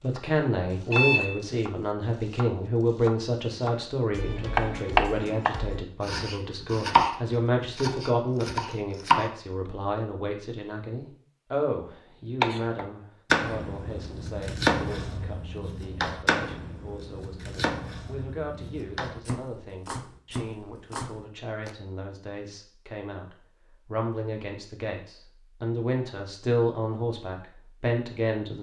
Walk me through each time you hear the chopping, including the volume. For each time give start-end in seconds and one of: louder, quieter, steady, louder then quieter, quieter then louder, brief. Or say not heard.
0.0-9.3 louder then quieter
12.4-21.8 quieter.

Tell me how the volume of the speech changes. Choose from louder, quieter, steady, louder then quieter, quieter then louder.
quieter then louder.